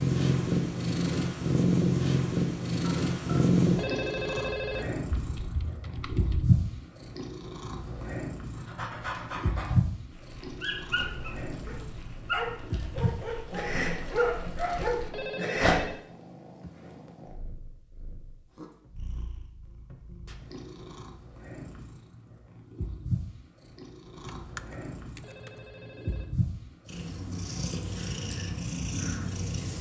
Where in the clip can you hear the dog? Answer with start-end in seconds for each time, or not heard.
8.6-15.8.